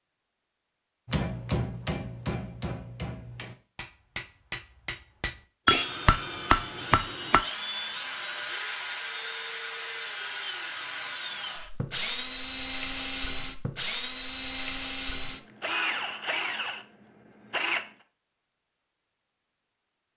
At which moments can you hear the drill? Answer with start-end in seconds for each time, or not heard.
5.7-17.9.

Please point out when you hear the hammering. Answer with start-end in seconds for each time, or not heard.
1.1-7.4.